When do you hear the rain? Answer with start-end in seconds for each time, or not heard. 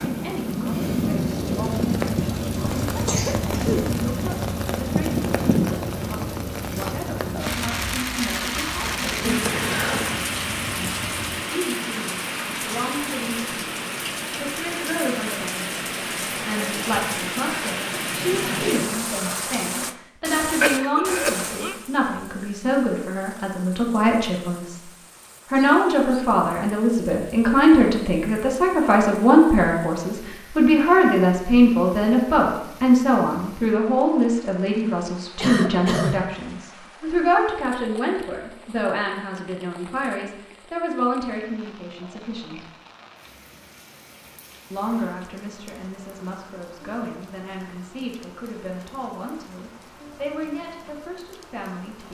0.0-52.0.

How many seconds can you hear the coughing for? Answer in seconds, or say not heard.
3 s.